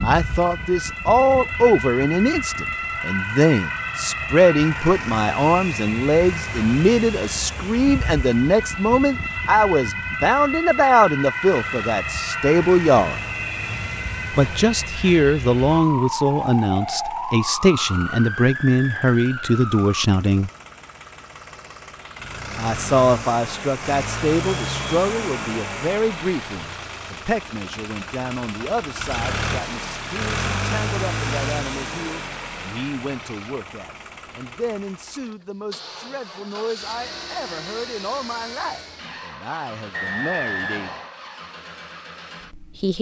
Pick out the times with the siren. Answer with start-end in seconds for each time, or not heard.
0.0-20.1.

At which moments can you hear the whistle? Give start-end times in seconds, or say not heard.
39.9-41.1.